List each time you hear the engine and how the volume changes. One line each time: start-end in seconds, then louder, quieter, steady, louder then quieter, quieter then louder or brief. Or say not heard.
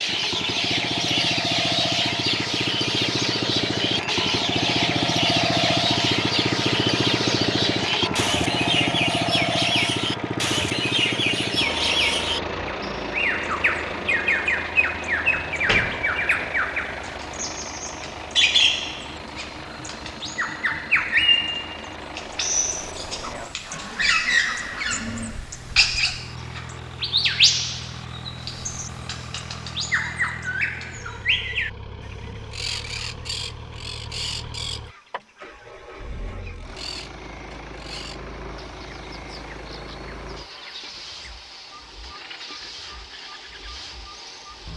0.0-44.7 quieter.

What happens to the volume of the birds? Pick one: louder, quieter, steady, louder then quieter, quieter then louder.
quieter.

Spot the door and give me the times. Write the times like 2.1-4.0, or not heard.
15.2-16.6.